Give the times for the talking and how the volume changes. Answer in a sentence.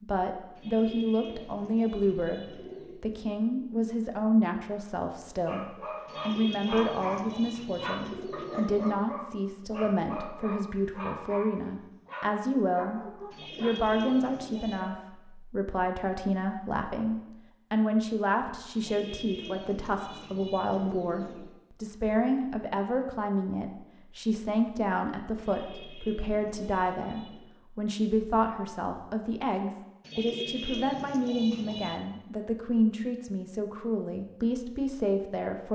The talking can be heard from 0.0 to 13.0 s, at a steady volume; and from 13.6 to 35.7 s, at a steady volume.